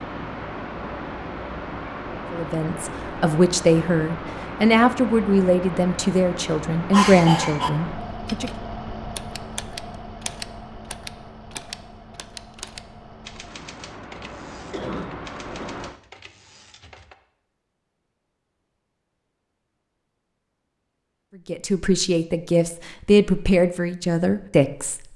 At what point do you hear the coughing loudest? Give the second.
7 s.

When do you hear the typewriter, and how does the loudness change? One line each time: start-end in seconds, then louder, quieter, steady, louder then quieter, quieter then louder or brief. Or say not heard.
8.2-17.1 quieter.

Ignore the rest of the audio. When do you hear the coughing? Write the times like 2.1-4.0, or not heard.
6.9-7.7, 14.7-16.3.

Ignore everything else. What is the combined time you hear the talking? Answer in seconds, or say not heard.
10 s.